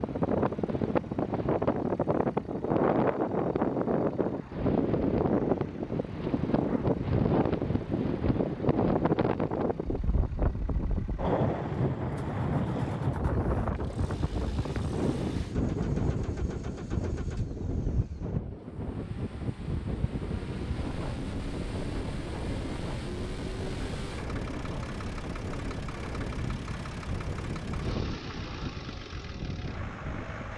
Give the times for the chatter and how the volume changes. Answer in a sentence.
The chatter can't be heard in this clip.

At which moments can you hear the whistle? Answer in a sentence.
You can't hear the whistle here.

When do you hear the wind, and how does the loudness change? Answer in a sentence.
You can hear the wind from 0.0 to 30.5 s, getting quieter.